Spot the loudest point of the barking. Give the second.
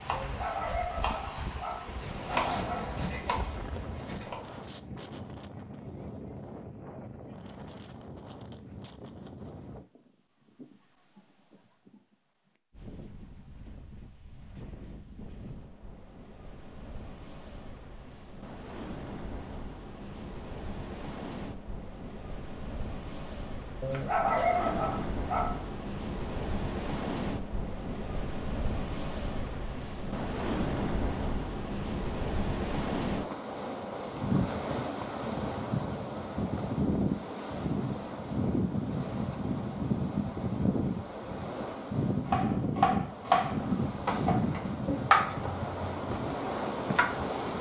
24 s.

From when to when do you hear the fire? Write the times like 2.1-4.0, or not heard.
not heard.